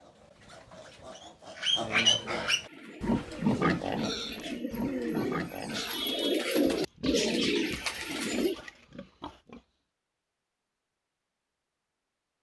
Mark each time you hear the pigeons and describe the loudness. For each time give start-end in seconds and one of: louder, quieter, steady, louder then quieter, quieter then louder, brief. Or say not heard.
2.6-8.6 louder.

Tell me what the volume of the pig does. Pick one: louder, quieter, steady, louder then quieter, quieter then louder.
quieter.